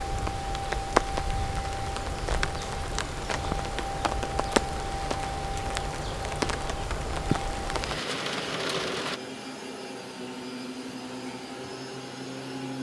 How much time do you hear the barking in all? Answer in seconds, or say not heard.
not heard.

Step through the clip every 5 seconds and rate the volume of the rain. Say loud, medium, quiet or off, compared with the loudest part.
loud, loud, off.